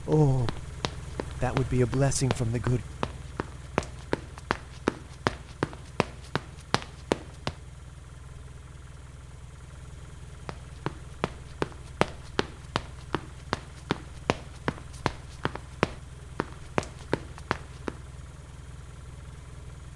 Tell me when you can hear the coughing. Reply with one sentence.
You can't hear the coughing here.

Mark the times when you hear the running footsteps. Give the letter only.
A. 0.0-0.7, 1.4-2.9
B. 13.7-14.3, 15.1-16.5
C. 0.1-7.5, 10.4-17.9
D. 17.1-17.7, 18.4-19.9
C.